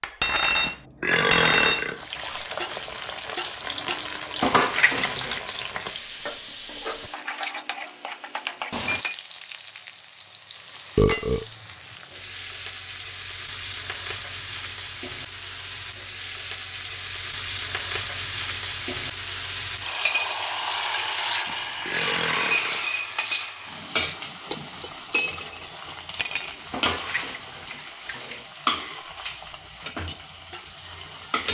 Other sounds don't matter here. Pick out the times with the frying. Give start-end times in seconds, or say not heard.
1.8-31.4.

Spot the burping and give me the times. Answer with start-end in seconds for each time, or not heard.
0.6-2.0, 10.9-11.4, 21.4-22.9.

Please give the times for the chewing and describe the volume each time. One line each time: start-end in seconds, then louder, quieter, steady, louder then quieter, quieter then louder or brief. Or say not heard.
not heard.